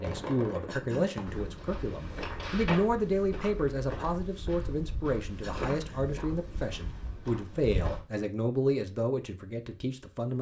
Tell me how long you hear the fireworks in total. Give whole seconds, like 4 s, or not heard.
3 s.